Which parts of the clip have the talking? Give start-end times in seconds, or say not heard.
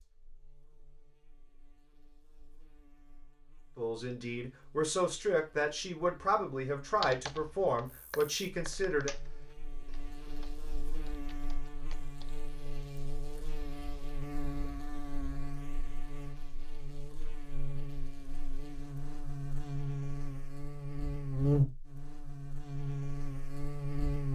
3.8-9.2.